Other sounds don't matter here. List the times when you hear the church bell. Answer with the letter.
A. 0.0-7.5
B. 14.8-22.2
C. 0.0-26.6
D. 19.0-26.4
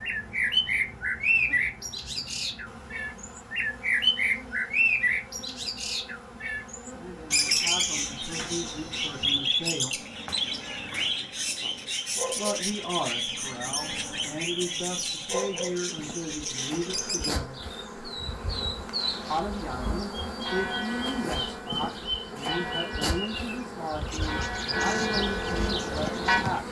D.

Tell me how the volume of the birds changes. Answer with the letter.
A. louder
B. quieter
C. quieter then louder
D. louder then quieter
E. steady
B.